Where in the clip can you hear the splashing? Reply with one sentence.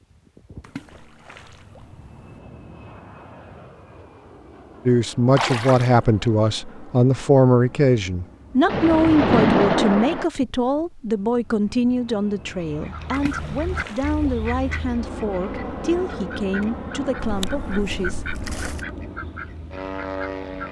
The splashing can be heard from 0.6 to 2.4 s, from 5.3 to 6.0 s, from 8.7 to 10.2 s, from 13.1 to 14.9 s and from 17.2 to 18.9 s.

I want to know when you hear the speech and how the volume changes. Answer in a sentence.
The speech can be heard from 4.8 to 18.4 s, getting quieter.